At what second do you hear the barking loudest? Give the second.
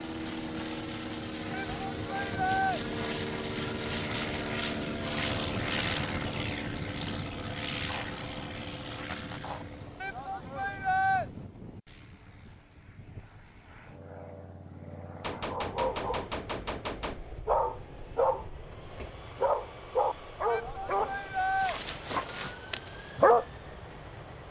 23 s.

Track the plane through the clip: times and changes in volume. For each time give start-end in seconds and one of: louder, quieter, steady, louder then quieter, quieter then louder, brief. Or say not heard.
0.0-24.4 quieter.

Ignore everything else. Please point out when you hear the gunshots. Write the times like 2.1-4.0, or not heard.
7.8-9.7, 15.2-17.2.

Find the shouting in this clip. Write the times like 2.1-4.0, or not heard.
1.5-2.8, 10.0-11.2, 20.4-21.8.